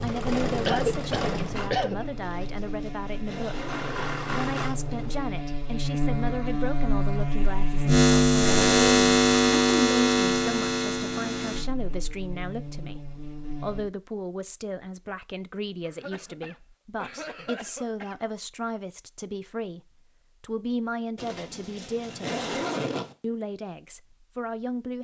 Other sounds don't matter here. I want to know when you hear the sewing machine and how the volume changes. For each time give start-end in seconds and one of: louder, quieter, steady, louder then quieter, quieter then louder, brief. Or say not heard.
0.0-5.2 quieter then louder.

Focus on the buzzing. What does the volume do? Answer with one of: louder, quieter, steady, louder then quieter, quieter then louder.
louder then quieter.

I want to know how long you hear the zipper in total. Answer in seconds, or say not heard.
4 s.